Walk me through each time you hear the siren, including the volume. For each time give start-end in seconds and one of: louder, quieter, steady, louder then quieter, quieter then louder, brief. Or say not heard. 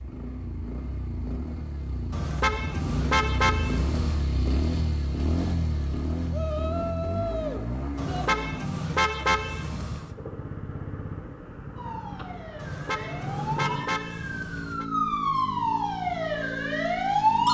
11.8-17.5 louder.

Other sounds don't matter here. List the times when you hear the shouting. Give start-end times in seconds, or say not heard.
6.3-8.3.